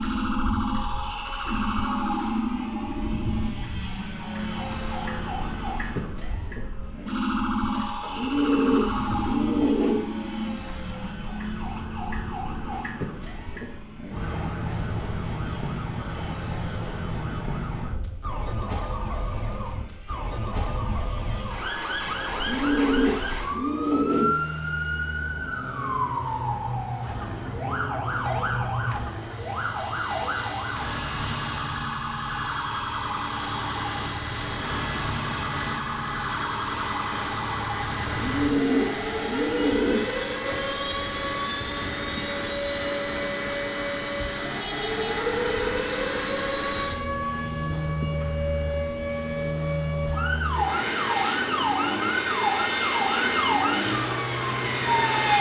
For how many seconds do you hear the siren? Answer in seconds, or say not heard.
55 s.